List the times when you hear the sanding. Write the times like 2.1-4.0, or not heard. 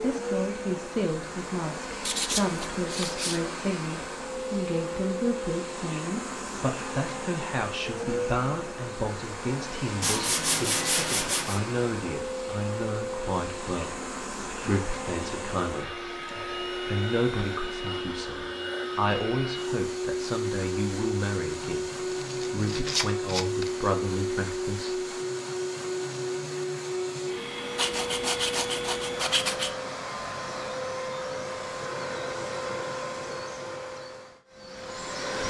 2.0-3.4, 10.0-11.6, 22.1-23.7, 27.8-29.7.